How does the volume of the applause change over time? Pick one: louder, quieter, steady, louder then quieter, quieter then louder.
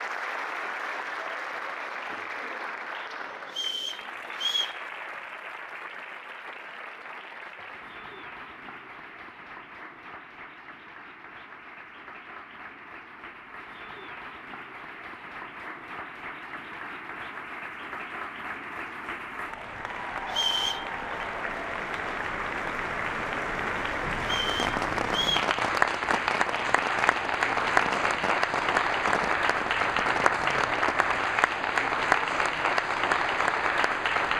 quieter then louder.